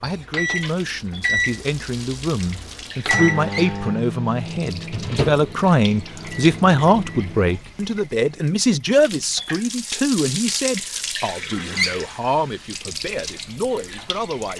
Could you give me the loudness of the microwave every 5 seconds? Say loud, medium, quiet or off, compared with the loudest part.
loud, loud, off.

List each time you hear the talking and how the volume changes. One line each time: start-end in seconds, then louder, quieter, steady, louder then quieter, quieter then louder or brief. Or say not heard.
0.0-14.5 louder then quieter.